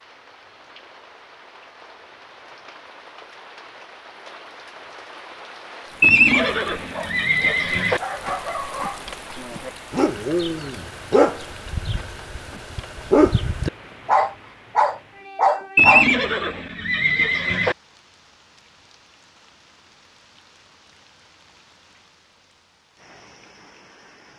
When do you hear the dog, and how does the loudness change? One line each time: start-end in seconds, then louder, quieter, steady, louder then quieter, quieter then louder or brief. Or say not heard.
6.2-16.1 louder.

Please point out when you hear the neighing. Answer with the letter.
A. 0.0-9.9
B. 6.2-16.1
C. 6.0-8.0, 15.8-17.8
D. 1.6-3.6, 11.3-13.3
C.